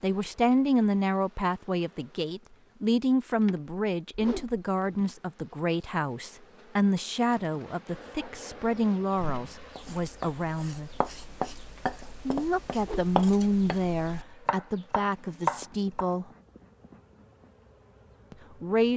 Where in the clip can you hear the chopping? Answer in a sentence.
You can hear the chopping from 9.7 to 16.1 s.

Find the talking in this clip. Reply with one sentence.
You can hear the talking from 0.0 to 10.9 s, from 12.2 to 16.2 s and from 18.3 to 18.9 s.